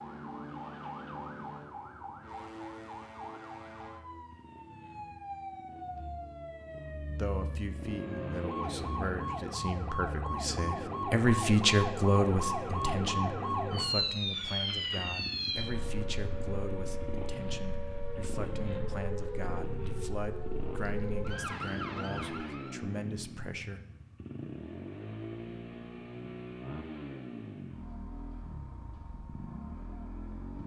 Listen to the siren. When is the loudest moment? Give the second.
14 s.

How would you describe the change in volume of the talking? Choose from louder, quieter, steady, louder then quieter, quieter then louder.
louder then quieter.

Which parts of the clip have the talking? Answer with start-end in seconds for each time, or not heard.
7.0-23.8.